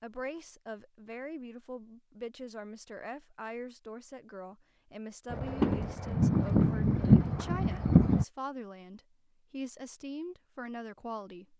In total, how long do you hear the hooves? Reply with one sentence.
The hooves can be heard for 3 seconds in total.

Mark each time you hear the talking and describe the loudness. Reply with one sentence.
The talking can be heard from 0.0 to 11.5 s, at a steady volume.